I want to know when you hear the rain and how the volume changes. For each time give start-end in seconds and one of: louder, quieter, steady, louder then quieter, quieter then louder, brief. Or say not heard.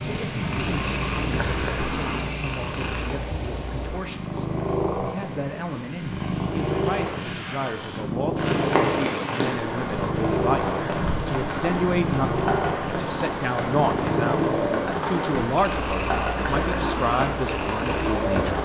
0.0-18.6 quieter then louder.